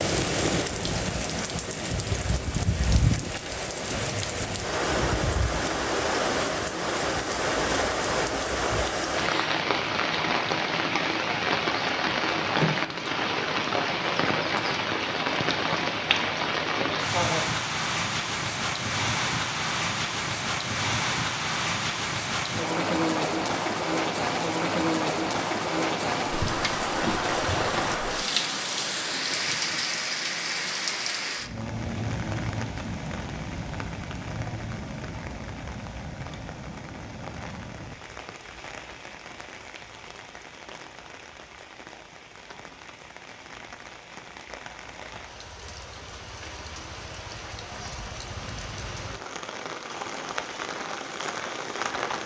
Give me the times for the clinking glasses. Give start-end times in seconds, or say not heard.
not heard.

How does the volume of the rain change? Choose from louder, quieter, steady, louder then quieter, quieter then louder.
quieter.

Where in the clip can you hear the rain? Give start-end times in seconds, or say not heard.
0.0-52.2.